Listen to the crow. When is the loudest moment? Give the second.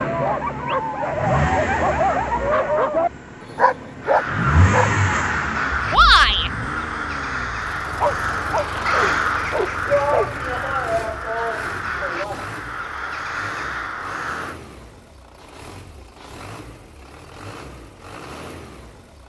9 s.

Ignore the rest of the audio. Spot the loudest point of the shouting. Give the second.
6 s.